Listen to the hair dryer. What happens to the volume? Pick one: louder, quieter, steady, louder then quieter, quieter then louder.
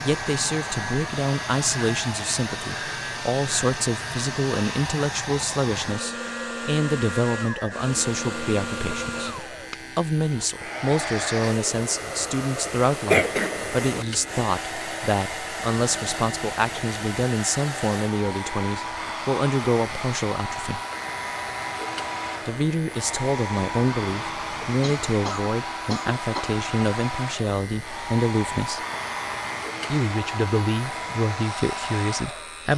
steady.